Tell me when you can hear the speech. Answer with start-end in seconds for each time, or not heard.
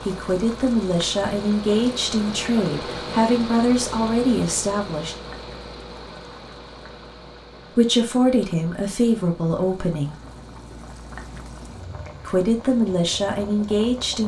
0.0-5.2, 7.8-10.2, 12.2-14.2.